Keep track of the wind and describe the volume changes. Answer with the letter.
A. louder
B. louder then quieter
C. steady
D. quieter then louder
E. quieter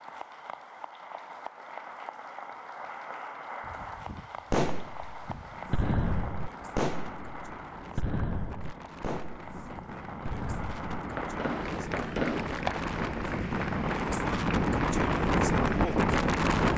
A.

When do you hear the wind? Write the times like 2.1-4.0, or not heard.
3.6-16.7.